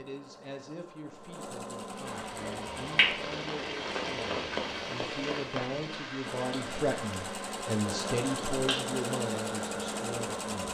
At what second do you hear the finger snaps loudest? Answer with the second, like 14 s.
3 s.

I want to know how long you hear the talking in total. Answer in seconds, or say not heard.
11 s.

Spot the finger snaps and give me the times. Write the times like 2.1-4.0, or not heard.
2.0-3.1, 7.8-8.8.